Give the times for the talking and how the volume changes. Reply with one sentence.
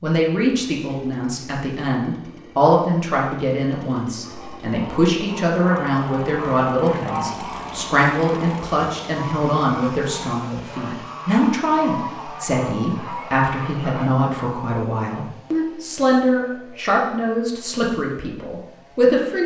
You can hear the talking from 0.0 to 19.4 s, at a steady volume.